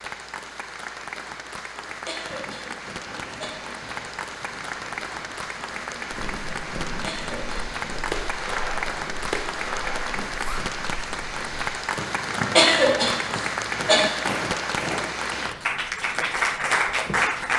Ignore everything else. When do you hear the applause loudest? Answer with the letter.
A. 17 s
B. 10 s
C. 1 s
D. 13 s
A.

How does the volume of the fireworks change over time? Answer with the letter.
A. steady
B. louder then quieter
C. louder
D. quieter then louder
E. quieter
C.